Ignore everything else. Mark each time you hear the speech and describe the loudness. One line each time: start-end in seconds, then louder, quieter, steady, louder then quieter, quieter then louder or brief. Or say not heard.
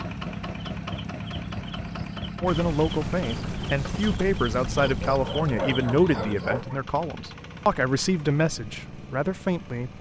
2.4-9.9 steady.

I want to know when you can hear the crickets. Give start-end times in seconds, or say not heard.
0.0-6.8.